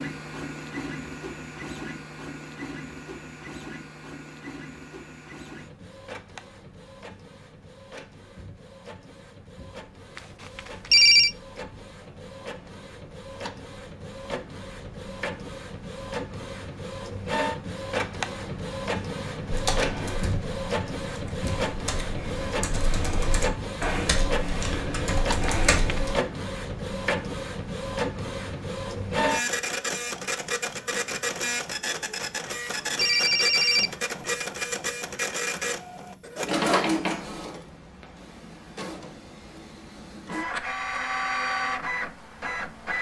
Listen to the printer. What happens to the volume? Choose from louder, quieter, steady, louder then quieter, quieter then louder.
louder.